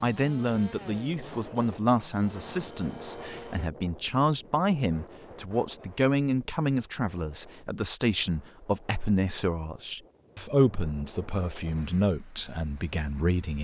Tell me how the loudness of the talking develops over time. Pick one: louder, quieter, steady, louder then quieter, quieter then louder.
steady.